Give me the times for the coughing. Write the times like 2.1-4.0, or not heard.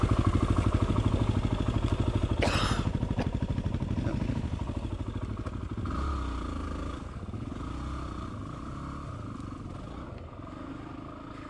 2.4-3.3.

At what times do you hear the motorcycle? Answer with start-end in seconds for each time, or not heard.
0.0-11.4.